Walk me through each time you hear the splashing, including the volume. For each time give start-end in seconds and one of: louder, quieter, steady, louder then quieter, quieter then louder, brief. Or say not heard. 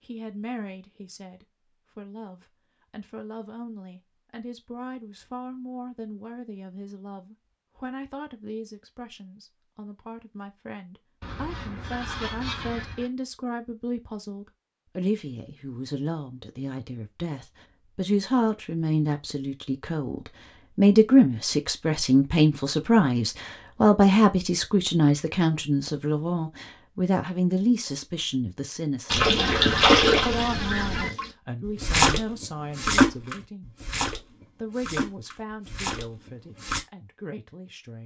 29.1-36.8 quieter.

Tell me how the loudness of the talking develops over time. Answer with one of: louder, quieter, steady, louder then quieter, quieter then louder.
louder then quieter.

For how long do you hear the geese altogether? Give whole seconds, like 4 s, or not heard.
4 s.